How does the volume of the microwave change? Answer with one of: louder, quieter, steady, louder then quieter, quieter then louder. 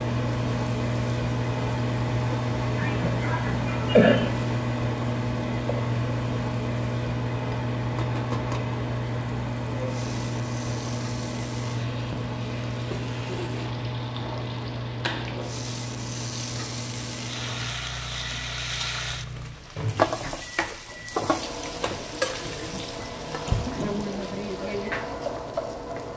quieter.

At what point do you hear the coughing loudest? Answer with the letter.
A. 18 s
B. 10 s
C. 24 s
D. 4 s
D.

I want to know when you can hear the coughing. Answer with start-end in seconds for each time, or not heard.
2.8-4.3, 23.3-24.1.